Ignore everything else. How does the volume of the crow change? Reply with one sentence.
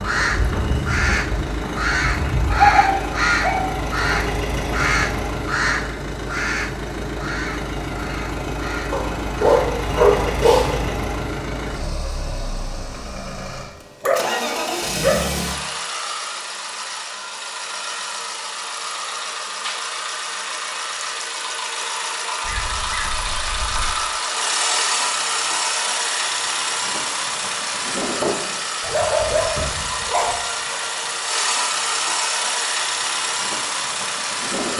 The loudness of the crow goes down.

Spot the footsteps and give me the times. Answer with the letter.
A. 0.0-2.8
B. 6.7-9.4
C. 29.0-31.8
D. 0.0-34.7
A.